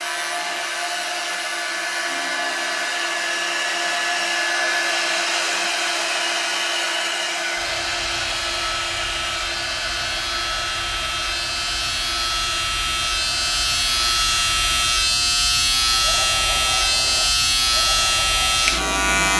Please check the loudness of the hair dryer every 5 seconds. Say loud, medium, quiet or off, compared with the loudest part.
loud, loud, medium, medium.